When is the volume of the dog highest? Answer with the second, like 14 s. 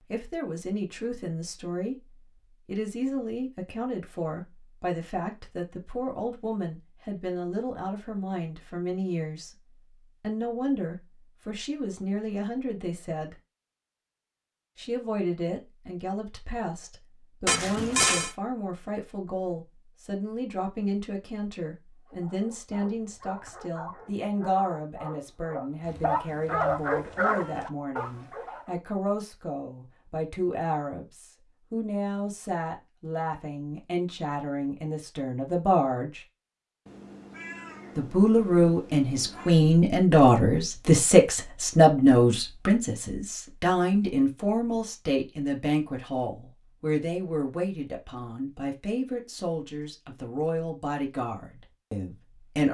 27 s.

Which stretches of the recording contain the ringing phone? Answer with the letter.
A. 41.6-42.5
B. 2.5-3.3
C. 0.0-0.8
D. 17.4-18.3
D.